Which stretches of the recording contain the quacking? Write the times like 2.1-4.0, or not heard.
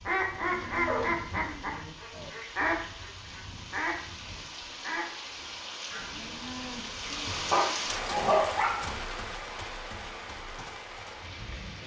0.0-6.0.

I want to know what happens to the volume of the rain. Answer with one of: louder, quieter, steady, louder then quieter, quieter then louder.
louder then quieter.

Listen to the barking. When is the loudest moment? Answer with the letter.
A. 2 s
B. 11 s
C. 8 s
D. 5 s
C.